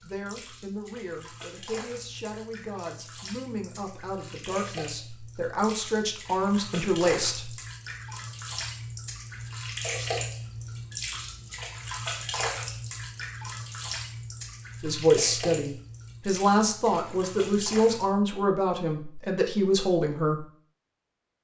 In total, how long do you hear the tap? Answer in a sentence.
You can hear the tap for 18 seconds altogether.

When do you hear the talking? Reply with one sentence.
The talking can be heard from 0.0 to 7.5 s and from 14.8 to 20.4 s.